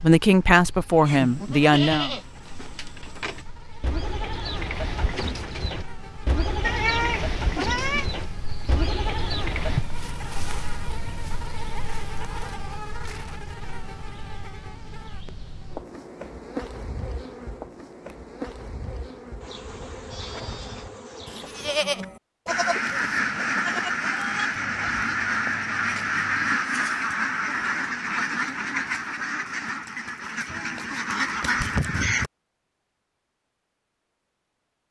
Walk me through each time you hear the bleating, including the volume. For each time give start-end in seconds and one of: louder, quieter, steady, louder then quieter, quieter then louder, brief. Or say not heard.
1.1-9.8 steady
19.4-27.1 louder then quieter.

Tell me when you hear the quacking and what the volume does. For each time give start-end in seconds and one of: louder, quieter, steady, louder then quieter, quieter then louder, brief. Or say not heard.
22.0-32.3 steady.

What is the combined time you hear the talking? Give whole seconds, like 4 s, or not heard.
2 s.